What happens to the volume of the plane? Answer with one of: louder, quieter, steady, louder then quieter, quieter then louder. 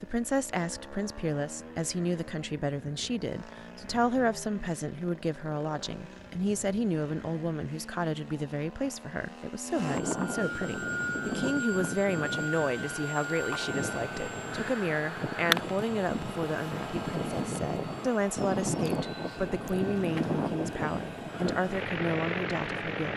louder.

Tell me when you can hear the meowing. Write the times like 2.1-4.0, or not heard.
not heard.